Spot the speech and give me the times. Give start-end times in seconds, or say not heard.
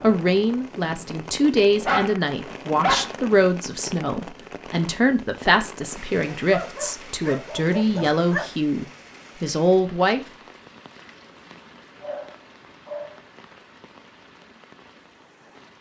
0.0-10.2.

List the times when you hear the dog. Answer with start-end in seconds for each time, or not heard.
1.6-3.1, 6.1-8.4, 12.0-13.2.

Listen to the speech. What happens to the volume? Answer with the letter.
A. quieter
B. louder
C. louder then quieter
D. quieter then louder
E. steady
E.